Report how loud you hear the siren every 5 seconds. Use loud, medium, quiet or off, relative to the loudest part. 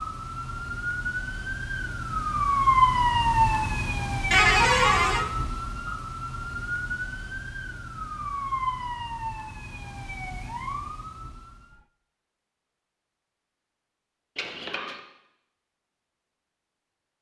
loud, medium, quiet, off.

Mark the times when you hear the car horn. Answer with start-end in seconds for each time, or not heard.
4.3-5.2, 14.3-15.0.